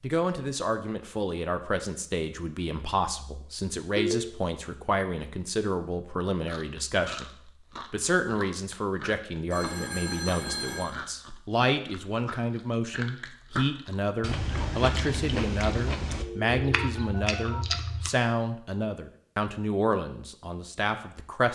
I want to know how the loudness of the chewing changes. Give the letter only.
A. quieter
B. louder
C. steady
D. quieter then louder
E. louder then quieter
B.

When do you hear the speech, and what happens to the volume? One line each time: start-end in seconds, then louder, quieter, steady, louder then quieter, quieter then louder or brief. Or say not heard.
0.0-21.5 steady.